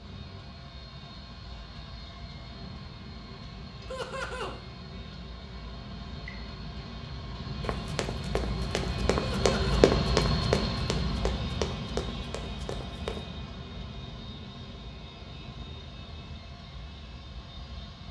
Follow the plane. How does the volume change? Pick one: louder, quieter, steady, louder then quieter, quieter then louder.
louder then quieter.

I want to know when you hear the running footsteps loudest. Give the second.
10 s.